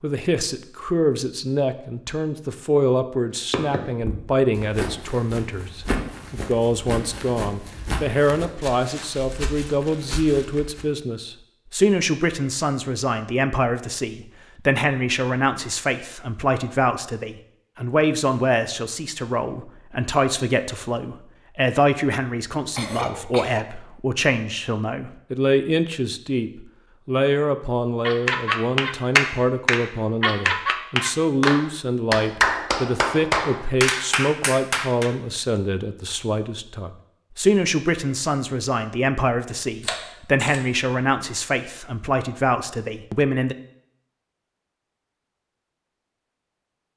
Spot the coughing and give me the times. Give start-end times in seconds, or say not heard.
22.7-23.7.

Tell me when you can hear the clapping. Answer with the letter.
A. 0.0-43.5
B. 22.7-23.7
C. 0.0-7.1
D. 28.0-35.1
D.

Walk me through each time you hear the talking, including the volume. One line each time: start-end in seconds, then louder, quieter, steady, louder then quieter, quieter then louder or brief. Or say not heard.
0.0-43.5 steady.